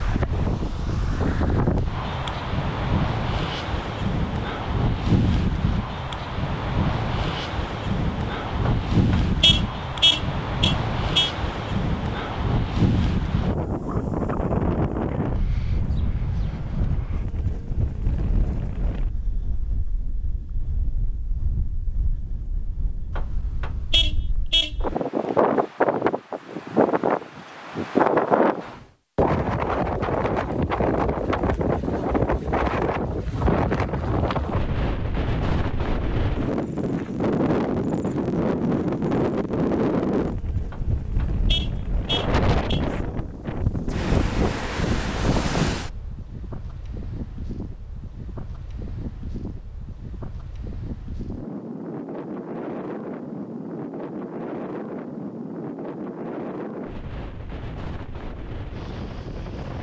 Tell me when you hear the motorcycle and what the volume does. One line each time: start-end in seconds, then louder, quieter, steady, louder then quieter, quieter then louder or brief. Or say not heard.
not heard.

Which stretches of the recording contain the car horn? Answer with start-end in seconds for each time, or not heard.
8.7-11.3, 23.1-24.7, 40.7-42.8.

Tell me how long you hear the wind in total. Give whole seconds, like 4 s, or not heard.
60 s.